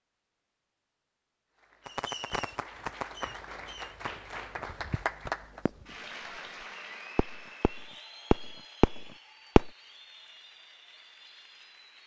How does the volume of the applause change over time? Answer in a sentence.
The loudness of the applause goes up, then down.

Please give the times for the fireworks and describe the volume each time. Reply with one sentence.
The fireworks can be heard from 1.9 to 6.4 s, getting quieter then louder; and briefly from 7.2 to 9.7 s.